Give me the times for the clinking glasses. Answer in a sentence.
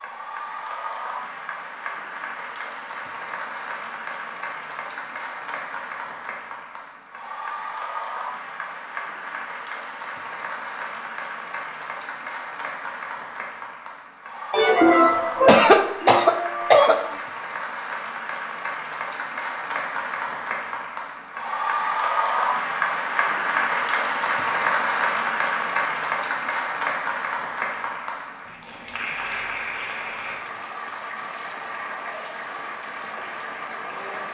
The clinking glasses can't be heard in this clip.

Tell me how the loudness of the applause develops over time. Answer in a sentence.
The loudness of the applause goes up, then down.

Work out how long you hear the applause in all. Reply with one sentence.
The applause can be heard for 34 seconds in total.